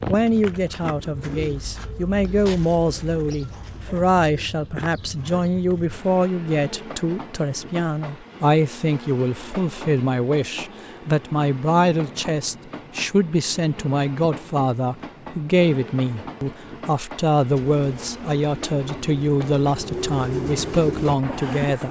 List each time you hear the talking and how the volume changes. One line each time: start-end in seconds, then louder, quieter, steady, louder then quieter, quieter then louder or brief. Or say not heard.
0.1-21.8 steady.